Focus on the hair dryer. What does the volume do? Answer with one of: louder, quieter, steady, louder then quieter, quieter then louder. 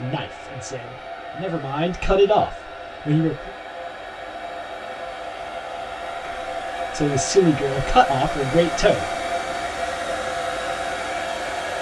louder.